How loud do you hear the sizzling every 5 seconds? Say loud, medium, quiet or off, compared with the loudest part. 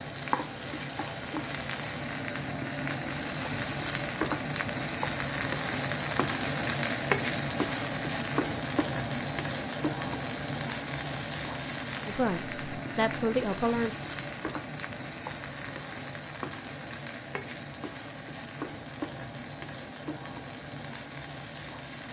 loud, loud, medium, medium, medium.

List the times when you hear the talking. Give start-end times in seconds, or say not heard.
12.1-13.9.